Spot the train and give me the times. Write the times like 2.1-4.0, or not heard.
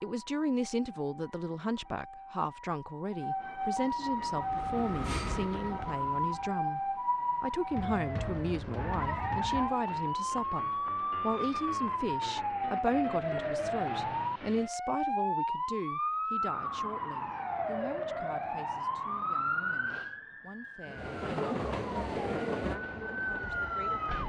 4.0-6.6, 20.9-24.2.